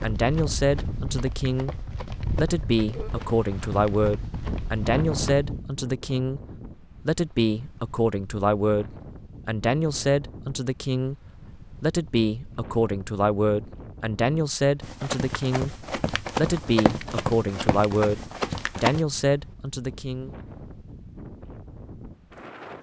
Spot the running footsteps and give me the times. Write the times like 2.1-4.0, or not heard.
0.0-5.4, 14.8-19.1.